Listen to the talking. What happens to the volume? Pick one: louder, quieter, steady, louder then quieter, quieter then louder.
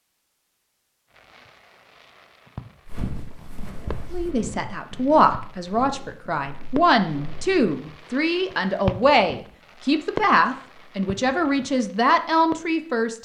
steady.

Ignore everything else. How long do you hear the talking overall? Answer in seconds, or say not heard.
9 s.